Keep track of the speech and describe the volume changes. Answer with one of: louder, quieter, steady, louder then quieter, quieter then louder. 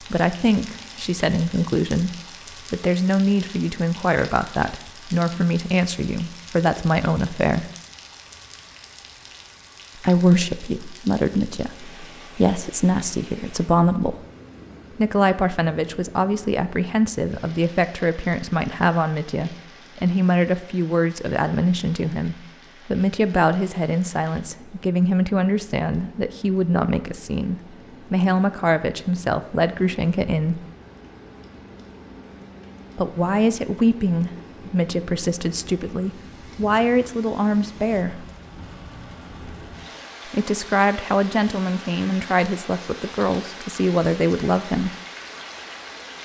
steady.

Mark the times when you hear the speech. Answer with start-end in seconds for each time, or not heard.
0.1-7.7, 9.9-14.2, 14.9-30.6, 33.0-38.3, 40.2-45.0.